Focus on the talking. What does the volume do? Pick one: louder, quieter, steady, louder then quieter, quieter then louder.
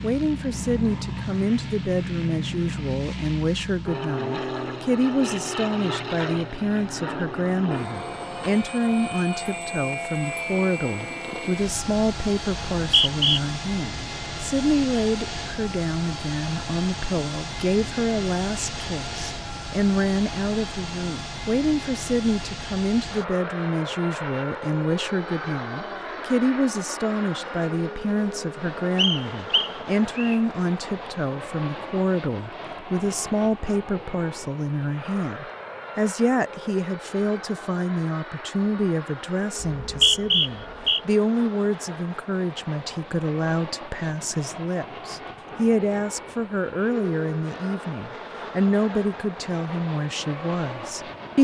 steady.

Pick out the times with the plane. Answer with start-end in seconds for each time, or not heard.
0.0-51.3.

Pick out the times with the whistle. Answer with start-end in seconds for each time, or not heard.
12.7-13.4, 28.9-30.4, 39.6-41.0.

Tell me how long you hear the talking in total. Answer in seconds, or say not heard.
51 s.